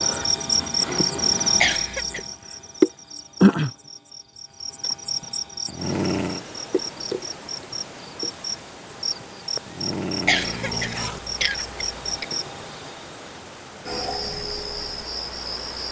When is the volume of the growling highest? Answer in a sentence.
The loudest moment of the growling is at 6 seconds.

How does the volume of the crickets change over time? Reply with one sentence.
The volume of the crickets goes down.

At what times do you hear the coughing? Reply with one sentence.
The coughing can be heard from 1.6 to 2.2 s and from 10.2 to 12.2 s.